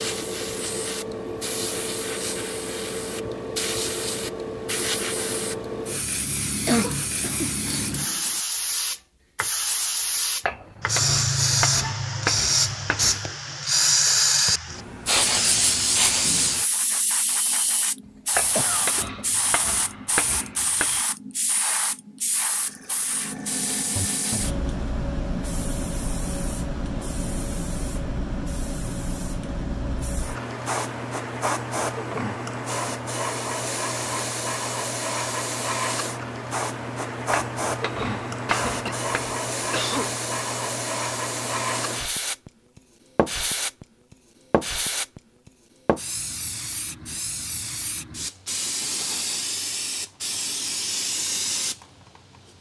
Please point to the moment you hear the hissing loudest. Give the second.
14 s.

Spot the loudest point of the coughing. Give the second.
7 s.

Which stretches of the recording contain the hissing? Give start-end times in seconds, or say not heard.
0.0-52.5.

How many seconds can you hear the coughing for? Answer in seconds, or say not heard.
4 s.